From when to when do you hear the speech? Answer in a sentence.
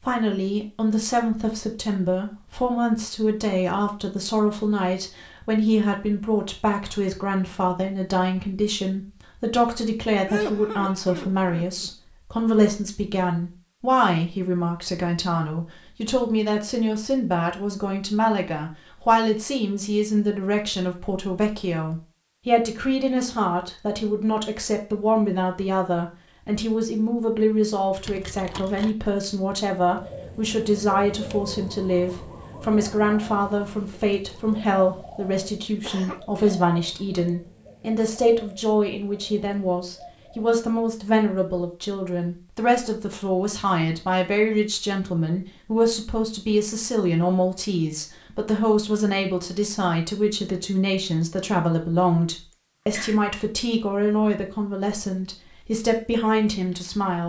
You can hear the speech from 0.0 to 57.2 s.